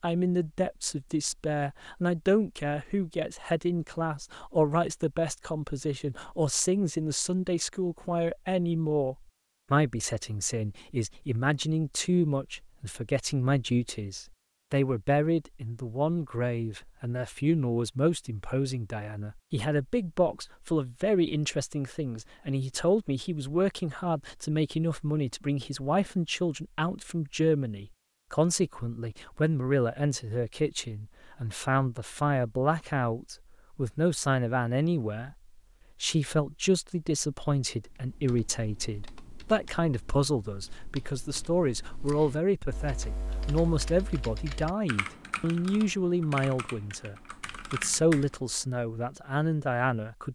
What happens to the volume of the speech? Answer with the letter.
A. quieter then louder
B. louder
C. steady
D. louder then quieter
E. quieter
C.